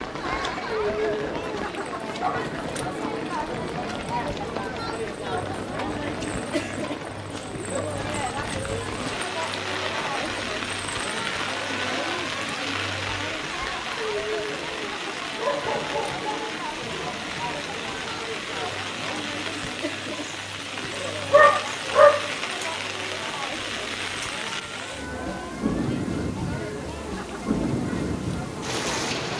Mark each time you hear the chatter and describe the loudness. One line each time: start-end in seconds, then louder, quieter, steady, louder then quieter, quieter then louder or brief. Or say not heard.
0.0-29.3 quieter.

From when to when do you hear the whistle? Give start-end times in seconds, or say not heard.
not heard.